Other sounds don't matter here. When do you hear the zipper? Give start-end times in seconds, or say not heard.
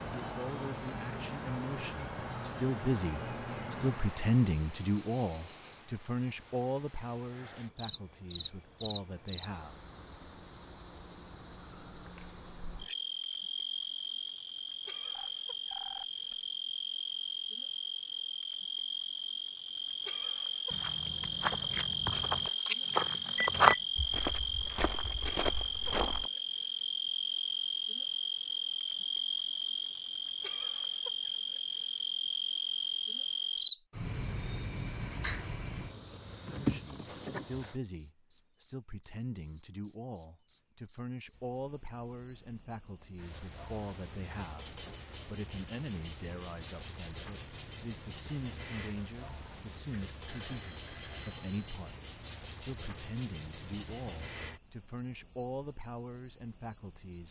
not heard.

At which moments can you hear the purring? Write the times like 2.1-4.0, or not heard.
not heard.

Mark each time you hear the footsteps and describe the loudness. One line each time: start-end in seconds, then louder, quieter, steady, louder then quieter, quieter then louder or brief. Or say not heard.
20.7-26.3 louder then quieter.